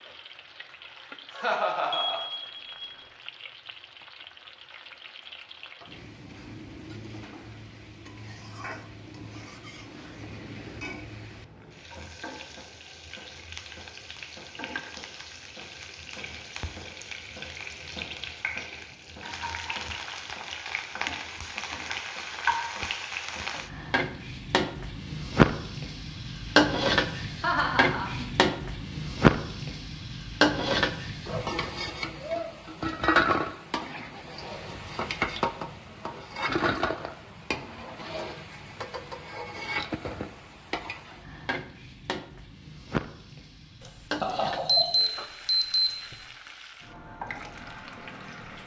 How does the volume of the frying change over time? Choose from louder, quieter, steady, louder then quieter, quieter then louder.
louder then quieter.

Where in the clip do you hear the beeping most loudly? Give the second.
45 s.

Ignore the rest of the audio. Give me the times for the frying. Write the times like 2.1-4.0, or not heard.
0.0-48.6.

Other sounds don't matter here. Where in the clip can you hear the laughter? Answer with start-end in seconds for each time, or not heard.
1.3-2.2, 27.4-28.3, 44.2-44.9.